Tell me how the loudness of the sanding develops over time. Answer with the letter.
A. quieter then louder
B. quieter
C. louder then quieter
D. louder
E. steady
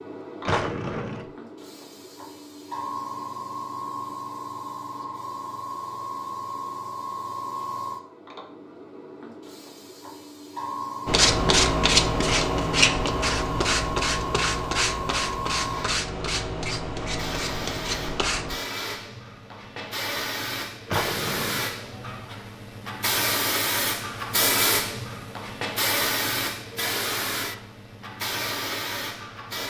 B.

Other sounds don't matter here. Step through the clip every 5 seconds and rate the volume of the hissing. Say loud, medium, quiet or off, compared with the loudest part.
medium, medium, medium, medium, loud, loud.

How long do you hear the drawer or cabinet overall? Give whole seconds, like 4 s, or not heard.
2 s.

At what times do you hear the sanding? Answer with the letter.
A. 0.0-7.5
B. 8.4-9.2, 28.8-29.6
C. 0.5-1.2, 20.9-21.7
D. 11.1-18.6
D.